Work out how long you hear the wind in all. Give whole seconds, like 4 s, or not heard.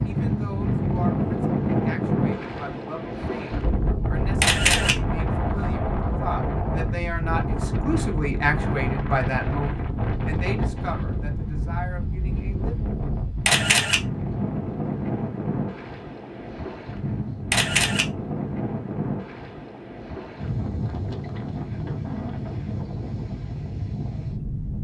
25 s.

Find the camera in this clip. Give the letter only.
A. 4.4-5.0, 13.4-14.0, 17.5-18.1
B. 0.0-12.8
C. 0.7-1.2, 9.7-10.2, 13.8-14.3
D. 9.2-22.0
A.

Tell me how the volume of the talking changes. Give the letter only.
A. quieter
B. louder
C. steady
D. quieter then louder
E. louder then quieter
E.